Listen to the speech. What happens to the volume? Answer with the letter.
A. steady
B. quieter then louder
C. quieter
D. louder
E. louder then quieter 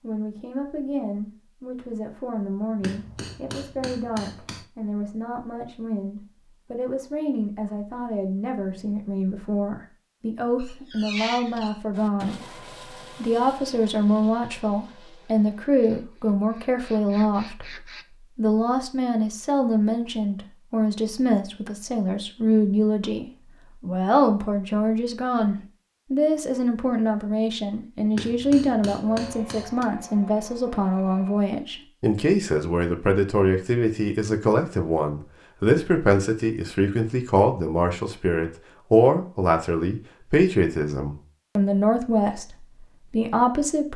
D.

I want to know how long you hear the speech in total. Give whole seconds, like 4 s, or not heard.
44 s.